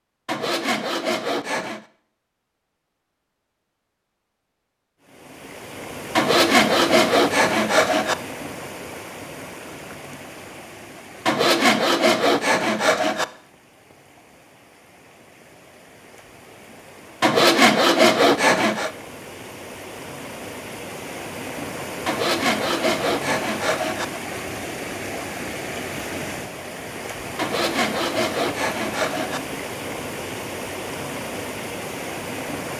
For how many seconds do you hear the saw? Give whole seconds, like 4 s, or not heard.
11 s.